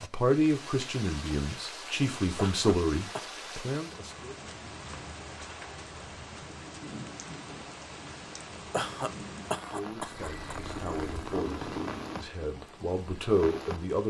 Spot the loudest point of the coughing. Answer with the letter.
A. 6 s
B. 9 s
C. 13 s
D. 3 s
B.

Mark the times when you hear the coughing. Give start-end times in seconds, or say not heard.
2.4-3.3, 8.7-10.6.